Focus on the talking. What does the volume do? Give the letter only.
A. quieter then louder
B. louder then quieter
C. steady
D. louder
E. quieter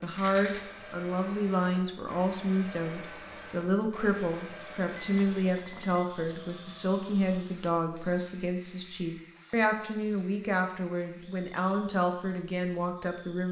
C.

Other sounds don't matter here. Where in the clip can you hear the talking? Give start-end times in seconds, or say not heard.
0.0-13.4.